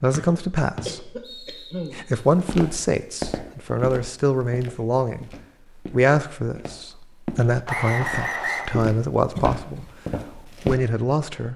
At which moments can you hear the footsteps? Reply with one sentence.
You can hear the footsteps from 2.3 to 10.8 s.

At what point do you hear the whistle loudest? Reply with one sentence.
The loudest moment of the whistle is at 8 seconds.